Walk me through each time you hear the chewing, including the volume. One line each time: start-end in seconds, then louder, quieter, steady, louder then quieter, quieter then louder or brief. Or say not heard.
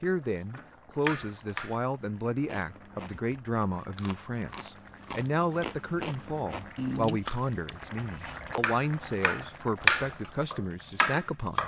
2.1-8.0 louder.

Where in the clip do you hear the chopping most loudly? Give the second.
10 s.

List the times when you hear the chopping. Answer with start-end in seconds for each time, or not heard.
0.0-1.8, 8.6-11.6.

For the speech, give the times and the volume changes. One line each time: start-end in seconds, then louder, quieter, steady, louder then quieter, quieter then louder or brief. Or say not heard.
0.0-11.6 steady.